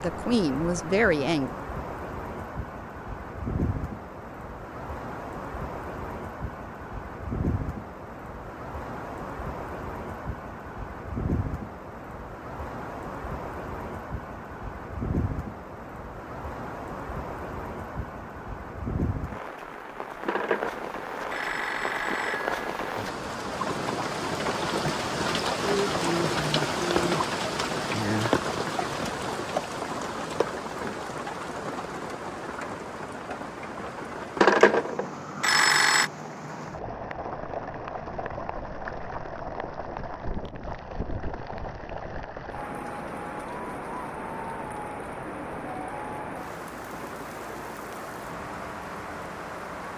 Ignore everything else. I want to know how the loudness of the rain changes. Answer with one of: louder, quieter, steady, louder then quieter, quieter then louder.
louder then quieter.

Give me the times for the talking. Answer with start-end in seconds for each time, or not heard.
0.0-1.5.